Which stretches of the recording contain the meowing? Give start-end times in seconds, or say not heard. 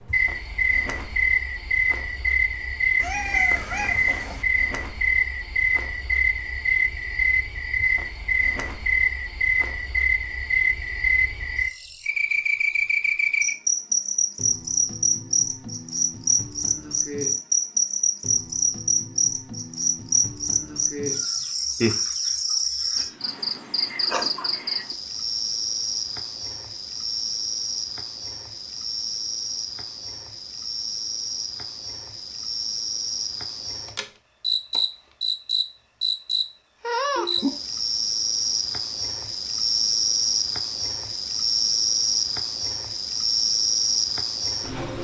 3.0-4.5.